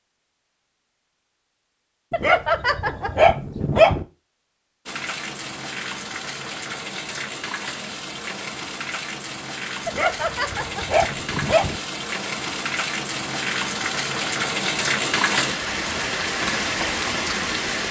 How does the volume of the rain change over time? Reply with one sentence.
The volume of the rain goes up.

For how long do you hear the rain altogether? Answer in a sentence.
The rain can be heard for 13 seconds in total.